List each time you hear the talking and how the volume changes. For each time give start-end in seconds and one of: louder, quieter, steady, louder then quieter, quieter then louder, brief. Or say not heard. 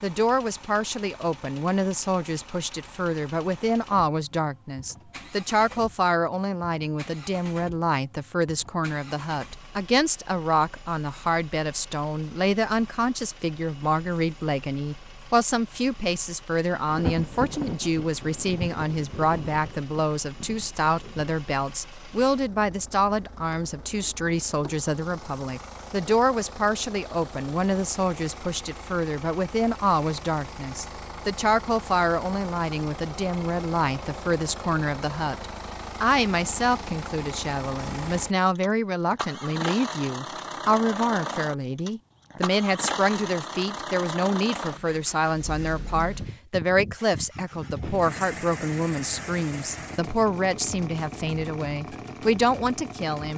0.0-53.3 steady.